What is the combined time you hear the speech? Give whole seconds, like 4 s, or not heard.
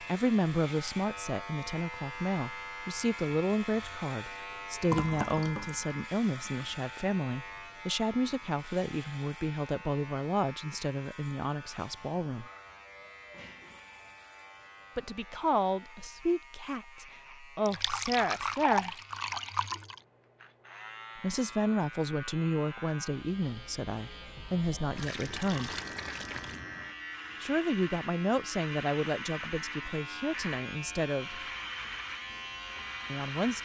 26 s.